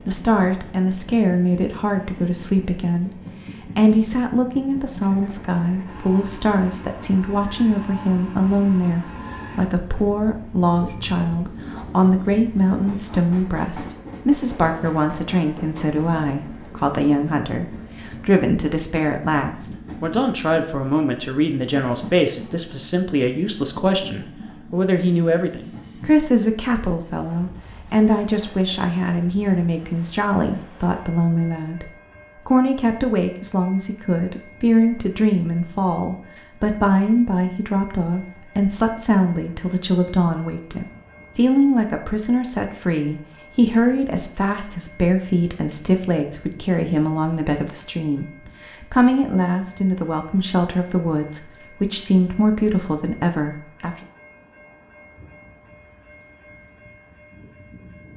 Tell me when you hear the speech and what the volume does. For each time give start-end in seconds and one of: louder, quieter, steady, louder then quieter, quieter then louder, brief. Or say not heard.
0.1-54.0 steady.